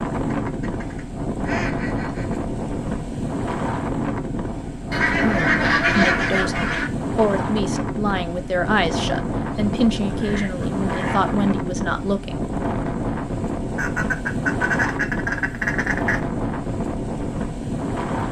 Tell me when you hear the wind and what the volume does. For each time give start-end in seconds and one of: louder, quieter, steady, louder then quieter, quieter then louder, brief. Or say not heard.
0.0-18.2 steady.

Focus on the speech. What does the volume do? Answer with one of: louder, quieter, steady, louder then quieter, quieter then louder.
steady.